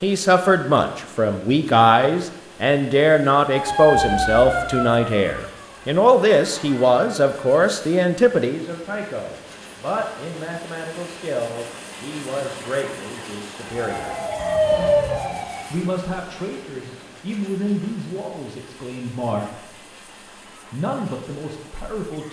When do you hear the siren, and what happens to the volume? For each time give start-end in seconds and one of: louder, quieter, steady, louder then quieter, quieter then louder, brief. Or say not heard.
3.5-7.7 quieter
13.7-15.7 brief.